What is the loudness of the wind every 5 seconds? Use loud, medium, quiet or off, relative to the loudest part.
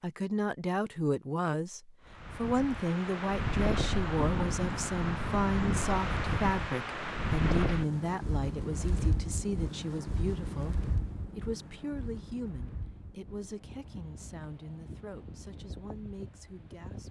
loud, loud, medium, quiet.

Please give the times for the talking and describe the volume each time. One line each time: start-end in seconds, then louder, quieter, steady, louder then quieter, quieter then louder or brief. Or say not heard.
0.0-17.0 quieter.